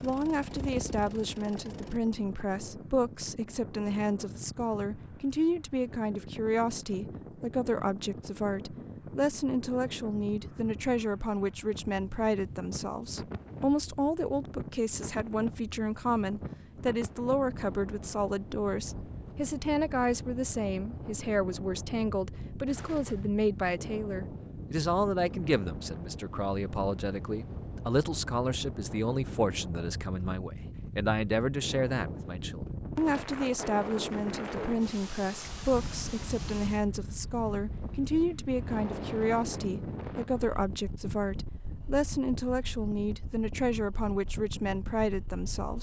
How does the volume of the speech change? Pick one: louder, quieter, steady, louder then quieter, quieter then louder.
steady.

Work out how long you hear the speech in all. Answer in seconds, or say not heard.
46 s.